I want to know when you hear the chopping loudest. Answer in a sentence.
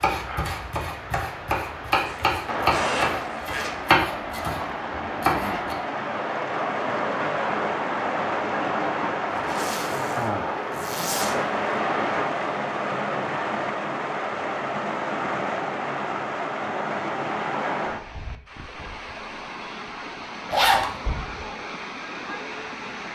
The volume of the chopping peaks at 4 seconds.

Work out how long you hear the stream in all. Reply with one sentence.
The stream can be heard for 23 seconds in total.